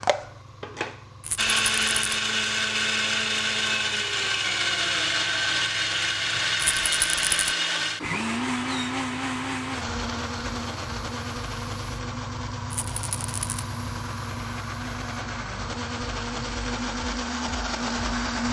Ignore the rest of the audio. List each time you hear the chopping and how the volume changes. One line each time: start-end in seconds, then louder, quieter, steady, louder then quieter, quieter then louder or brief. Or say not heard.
not heard.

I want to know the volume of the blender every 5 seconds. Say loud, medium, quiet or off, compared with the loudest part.
loud, loud, medium, medium.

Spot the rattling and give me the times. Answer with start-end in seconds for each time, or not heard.
1.2-2.2, 6.5-7.5, 12.7-13.7.